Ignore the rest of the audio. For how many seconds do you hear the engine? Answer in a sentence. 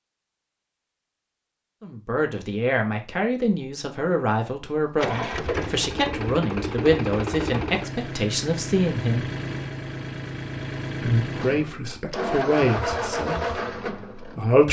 You can hear the engine for 10 seconds altogether.